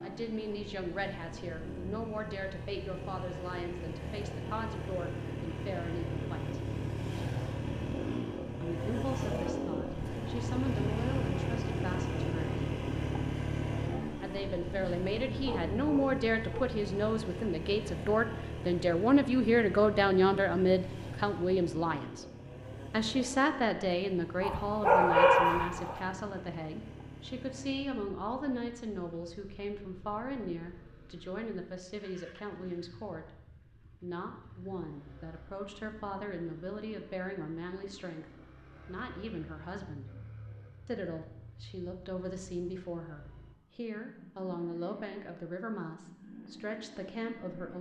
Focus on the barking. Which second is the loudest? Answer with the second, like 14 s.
25 s.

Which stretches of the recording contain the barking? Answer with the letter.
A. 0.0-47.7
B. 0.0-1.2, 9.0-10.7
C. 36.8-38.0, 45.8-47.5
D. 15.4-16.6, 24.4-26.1
D.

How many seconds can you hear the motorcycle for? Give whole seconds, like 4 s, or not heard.
48 s.